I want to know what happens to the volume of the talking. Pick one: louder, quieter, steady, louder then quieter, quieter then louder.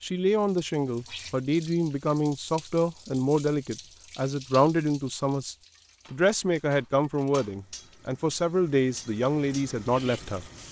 steady.